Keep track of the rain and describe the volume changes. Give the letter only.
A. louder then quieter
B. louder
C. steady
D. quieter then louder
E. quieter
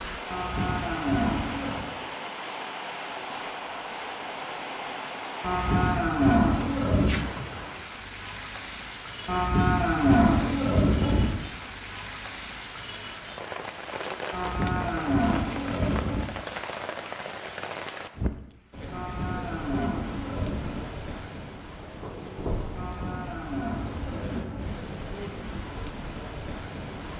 C.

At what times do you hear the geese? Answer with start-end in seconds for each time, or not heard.
not heard.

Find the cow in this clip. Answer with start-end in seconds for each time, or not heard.
0.3-1.9, 5.4-7.2, 9.2-11.3, 14.3-16.2, 18.9-20.9, 22.8-24.8.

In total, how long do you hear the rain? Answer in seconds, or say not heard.
27 s.